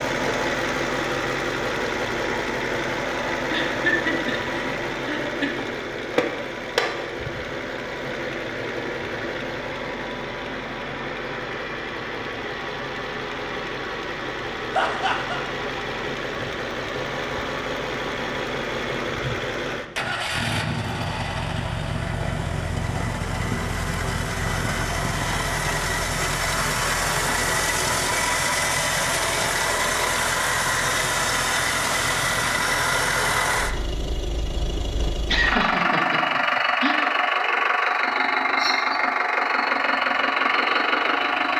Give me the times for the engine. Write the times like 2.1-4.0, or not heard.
0.0-41.5.